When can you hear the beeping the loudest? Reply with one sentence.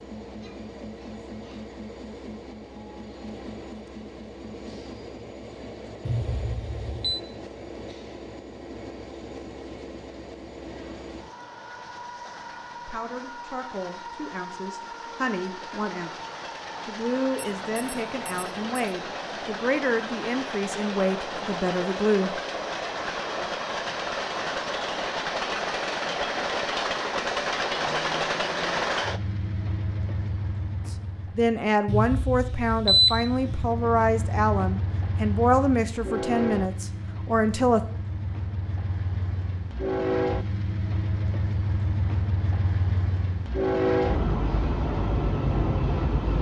The volume of the beeping peaks at 33 seconds.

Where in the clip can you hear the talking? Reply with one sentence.
The talking can be heard from 12.8 to 16.1 s, from 16.9 to 22.4 s and from 30.9 to 37.8 s.